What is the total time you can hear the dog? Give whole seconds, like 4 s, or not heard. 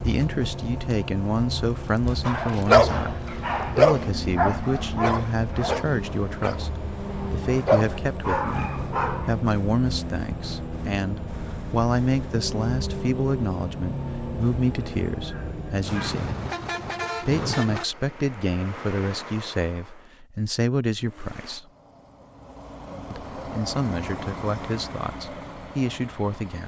7 s.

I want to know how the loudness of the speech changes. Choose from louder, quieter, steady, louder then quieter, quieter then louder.
steady.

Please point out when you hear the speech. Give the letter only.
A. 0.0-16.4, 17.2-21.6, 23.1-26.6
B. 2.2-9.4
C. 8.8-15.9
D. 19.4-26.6
A.